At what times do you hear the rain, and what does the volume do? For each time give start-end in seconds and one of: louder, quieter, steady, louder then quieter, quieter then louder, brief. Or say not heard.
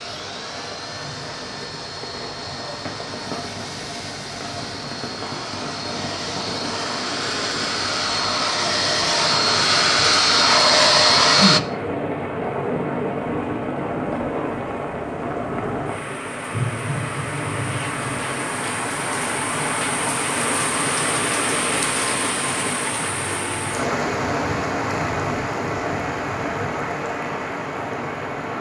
0.0-28.5 louder.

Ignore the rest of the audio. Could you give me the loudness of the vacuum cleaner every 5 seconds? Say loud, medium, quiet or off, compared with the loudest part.
quiet, medium, loud, off, off, off.